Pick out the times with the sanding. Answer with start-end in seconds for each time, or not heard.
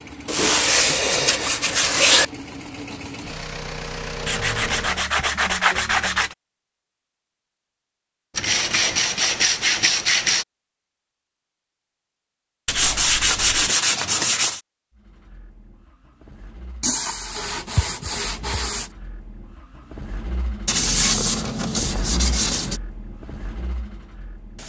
0.2-2.2, 4.2-6.3, 8.3-10.4, 12.7-14.6, 16.8-18.9, 20.6-22.8.